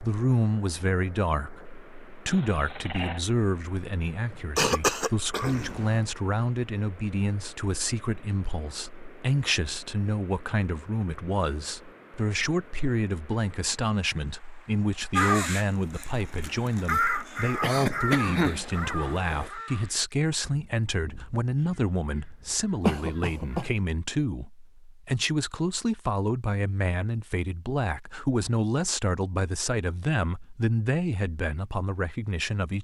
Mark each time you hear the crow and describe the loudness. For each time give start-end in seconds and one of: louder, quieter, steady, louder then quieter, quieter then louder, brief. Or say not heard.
15.2-23.7 quieter.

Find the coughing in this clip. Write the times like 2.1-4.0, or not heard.
4.3-6.0, 17.6-18.6, 22.8-23.7.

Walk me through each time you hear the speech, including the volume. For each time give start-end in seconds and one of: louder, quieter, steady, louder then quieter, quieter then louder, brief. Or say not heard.
0.0-32.8 steady.